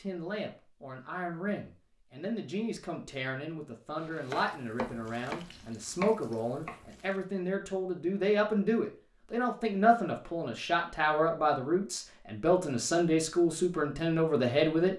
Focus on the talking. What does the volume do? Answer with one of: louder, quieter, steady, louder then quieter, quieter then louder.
louder.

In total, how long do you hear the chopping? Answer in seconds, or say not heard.
3 s.